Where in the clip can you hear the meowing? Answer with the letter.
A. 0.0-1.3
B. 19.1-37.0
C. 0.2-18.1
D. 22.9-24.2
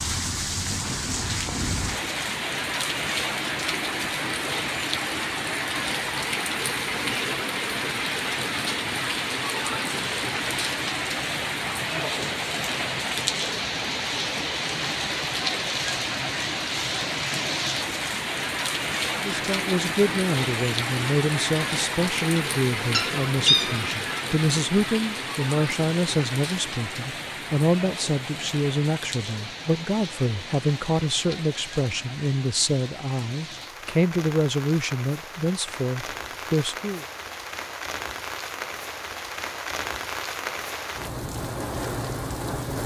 D.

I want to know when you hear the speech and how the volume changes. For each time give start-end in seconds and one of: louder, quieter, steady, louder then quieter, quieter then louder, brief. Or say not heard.
19.1-37.0 steady.